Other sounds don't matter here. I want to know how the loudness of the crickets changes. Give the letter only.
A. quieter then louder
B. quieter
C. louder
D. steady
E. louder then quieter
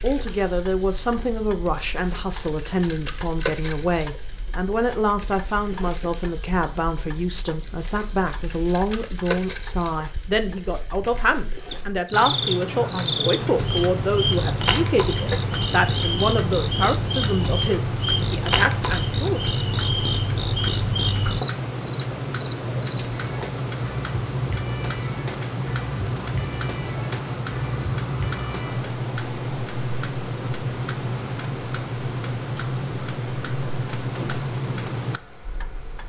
B.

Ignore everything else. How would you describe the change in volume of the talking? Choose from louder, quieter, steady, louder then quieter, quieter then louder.
steady.